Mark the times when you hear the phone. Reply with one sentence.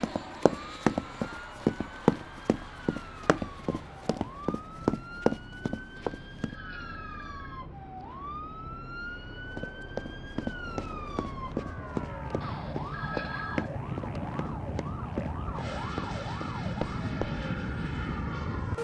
The phone can be heard from 6.0 to 7.7 s and from 12.4 to 13.7 s.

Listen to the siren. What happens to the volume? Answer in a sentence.
The volume of the siren goes up.